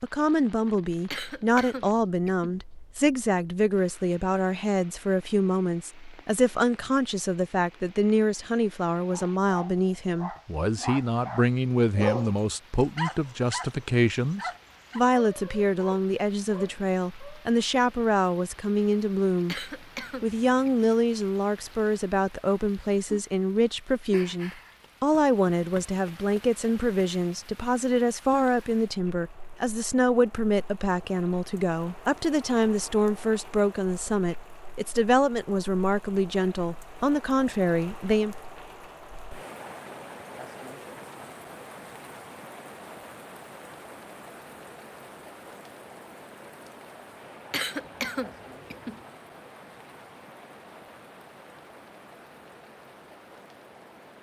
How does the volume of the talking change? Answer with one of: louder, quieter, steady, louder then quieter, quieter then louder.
steady.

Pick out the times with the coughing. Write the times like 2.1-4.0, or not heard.
1.1-2.5, 19.4-20.9, 47.5-49.0.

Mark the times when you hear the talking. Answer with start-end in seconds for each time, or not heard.
0.0-38.4.